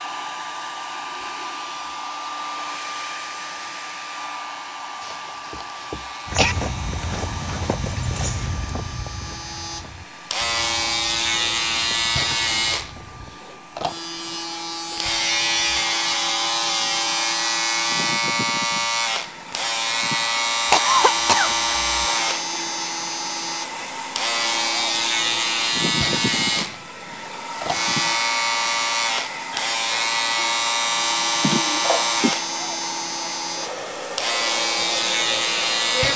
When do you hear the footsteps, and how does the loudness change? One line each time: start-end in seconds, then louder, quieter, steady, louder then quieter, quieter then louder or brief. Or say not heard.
6.2-13.4 quieter.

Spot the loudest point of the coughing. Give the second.
21 s.